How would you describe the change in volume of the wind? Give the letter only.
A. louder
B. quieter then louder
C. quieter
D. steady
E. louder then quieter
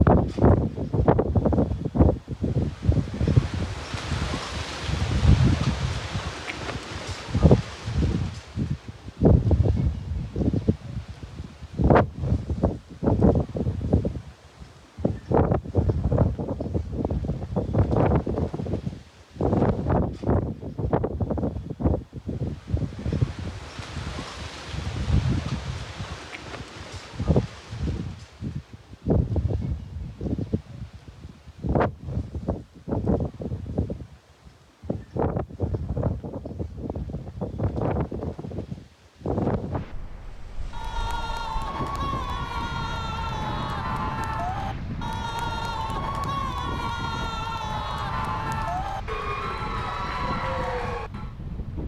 C.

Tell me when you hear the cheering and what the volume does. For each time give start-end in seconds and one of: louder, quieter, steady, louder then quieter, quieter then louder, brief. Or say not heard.
40.7-51.4 steady.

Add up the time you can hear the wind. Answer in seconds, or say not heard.
52 s.